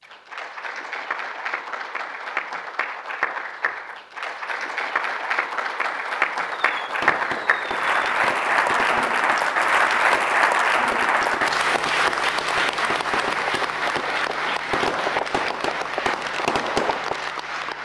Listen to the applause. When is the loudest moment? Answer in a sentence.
The loudest moment of the applause is at 10 seconds.